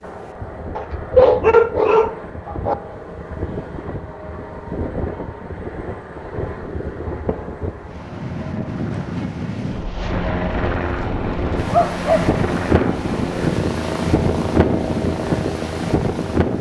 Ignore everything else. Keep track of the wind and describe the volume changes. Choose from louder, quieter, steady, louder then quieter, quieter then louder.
louder.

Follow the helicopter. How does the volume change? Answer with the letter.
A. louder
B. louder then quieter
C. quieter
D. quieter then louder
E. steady
A.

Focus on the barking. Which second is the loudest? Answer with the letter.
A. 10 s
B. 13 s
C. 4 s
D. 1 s
D.